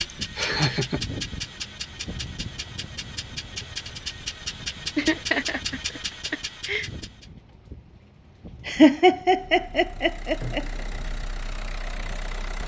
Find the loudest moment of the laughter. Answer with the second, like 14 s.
9 s.